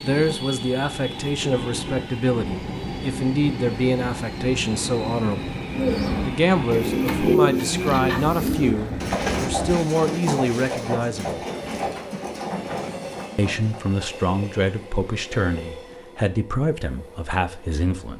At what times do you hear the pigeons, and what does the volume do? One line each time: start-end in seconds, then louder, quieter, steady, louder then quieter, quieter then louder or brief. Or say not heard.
5.7-13.9 quieter.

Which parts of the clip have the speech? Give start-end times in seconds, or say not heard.
0.0-5.5, 6.2-11.4, 13.3-18.1.